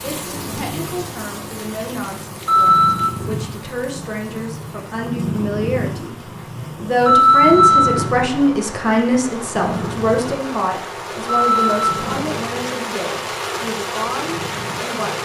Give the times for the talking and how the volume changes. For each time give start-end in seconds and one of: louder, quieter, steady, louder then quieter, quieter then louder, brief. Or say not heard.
0.0-15.2 louder then quieter.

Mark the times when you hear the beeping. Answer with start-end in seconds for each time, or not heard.
2.5-3.1, 7.0-8.0, 11.2-11.9.